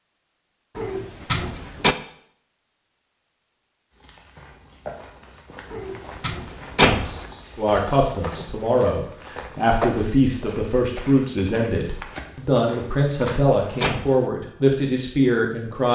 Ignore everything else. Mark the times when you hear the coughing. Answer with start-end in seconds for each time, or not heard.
not heard.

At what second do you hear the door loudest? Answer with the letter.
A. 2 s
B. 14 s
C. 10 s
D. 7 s
D.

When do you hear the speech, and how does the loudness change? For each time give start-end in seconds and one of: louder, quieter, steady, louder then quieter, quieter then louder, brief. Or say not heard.
7.5-15.9 steady.